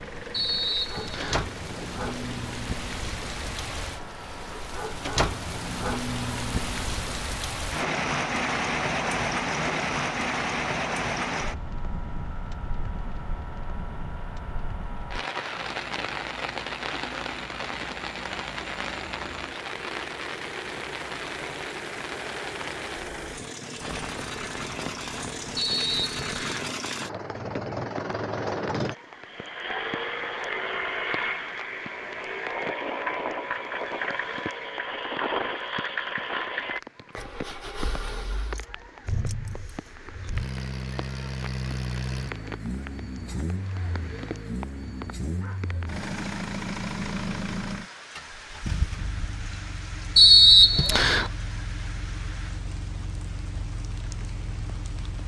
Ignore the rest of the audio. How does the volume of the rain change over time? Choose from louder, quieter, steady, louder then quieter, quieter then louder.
quieter.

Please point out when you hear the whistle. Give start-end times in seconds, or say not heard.
0.3-1.4, 25.6-26.7, 50.1-51.3.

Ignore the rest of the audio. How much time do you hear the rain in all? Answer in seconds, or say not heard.
55 s.